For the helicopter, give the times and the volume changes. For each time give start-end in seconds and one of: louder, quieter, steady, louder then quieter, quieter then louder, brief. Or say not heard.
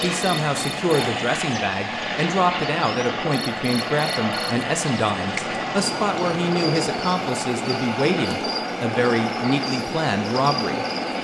0.0-11.1 steady.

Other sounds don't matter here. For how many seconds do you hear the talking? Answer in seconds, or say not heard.
11 s.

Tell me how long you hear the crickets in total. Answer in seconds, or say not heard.
11 s.